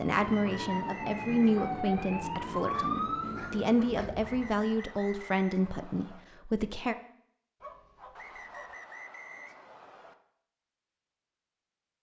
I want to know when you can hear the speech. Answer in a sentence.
The speech can be heard from 0.0 to 7.0 s.